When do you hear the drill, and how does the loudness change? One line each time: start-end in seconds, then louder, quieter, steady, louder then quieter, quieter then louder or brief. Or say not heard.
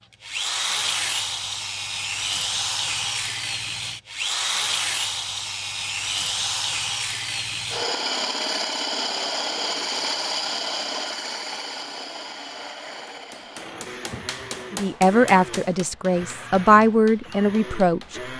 0.2-18.3 quieter.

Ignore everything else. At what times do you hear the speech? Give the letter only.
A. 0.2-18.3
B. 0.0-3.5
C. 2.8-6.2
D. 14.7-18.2
D.